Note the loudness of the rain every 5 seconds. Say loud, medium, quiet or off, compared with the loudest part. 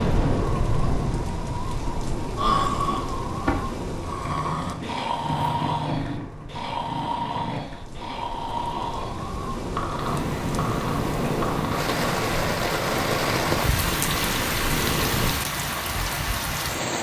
loud, medium, loud, loud.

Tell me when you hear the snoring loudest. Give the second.
3 s.